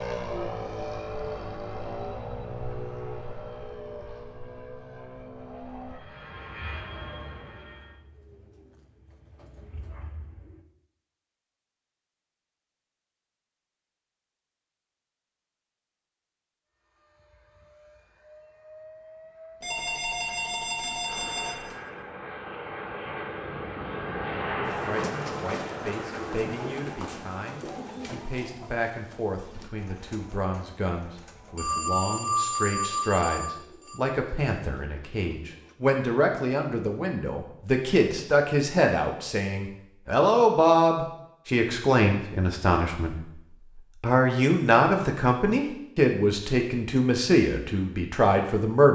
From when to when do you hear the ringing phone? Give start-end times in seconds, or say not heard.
19.6-21.8, 31.6-34.0.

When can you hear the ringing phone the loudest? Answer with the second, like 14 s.
32 s.